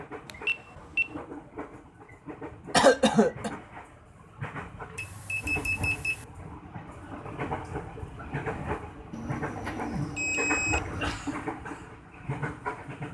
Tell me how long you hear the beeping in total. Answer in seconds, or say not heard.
4 s.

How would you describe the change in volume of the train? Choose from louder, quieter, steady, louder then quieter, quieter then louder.
louder.